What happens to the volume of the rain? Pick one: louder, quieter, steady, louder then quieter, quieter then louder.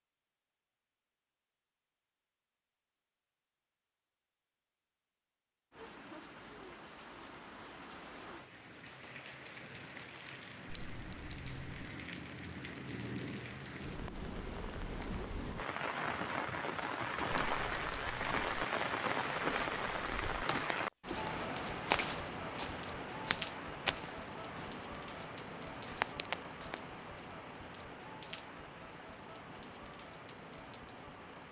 louder then quieter.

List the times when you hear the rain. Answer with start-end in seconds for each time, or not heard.
5.7-31.4.